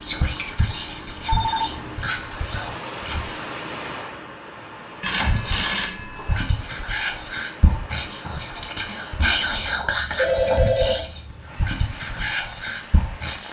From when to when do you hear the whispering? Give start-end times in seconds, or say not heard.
0.0-3.4, 5.1-13.4.